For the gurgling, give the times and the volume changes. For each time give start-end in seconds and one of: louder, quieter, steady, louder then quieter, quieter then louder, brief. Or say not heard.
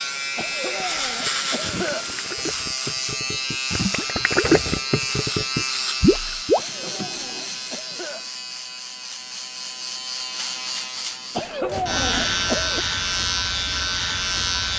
1.2-6.6 louder.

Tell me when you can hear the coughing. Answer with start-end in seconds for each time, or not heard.
0.3-2.1, 6.5-8.3, 11.3-12.8.